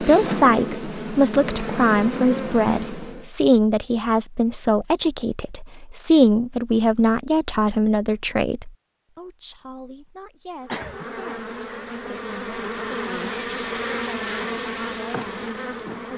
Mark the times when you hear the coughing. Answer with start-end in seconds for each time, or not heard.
10.7-11.1.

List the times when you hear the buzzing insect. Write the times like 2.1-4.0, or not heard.
0.0-3.3, 10.6-16.1.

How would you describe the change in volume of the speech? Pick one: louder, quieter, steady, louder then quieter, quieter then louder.
quieter.